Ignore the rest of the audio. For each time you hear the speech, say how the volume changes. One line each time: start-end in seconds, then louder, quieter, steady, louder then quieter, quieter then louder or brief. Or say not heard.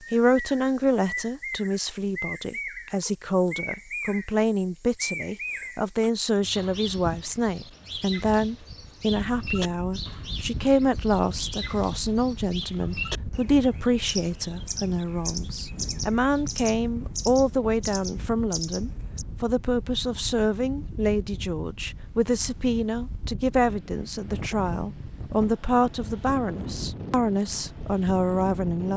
0.1-28.9 steady.